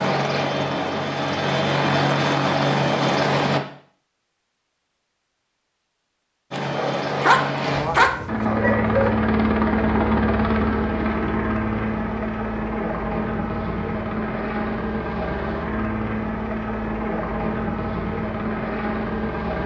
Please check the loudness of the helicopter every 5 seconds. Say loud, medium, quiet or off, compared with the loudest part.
loud, loud, loud, medium.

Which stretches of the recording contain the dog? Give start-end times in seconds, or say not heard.
6.6-9.2.